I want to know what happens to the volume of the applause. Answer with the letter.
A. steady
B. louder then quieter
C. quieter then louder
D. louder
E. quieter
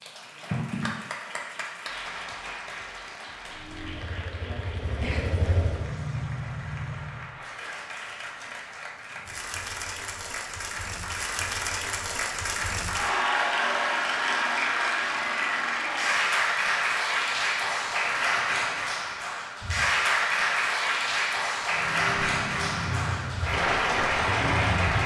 D.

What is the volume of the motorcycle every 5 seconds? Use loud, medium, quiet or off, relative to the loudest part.
medium, loud, off, off, loud.